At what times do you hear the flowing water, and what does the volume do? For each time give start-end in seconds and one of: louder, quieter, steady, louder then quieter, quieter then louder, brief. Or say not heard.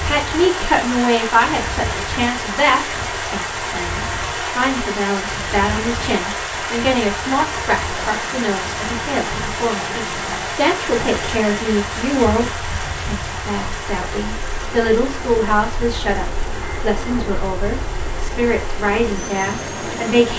0.0-20.3 quieter.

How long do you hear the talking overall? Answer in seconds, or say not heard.
20 s.